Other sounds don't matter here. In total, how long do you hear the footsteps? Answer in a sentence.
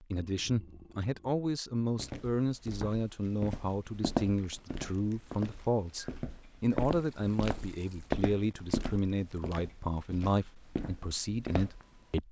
The footsteps can be heard for 10 seconds in total.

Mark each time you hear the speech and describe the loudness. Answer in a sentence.
The speech can be heard from 0.0 to 12.2 s, at a steady volume.